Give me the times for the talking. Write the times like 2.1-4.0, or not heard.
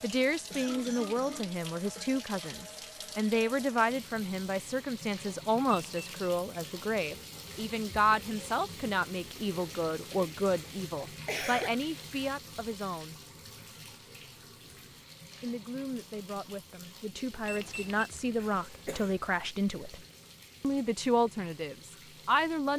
0.0-13.2, 15.4-20.0, 20.6-22.7.